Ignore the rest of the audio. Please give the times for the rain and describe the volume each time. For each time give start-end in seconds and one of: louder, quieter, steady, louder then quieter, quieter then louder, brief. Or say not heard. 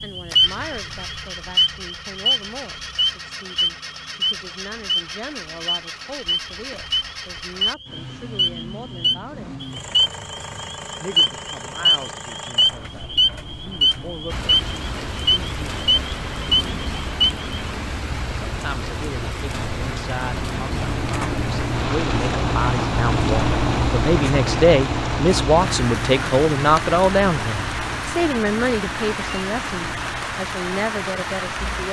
14.2-31.8 steady.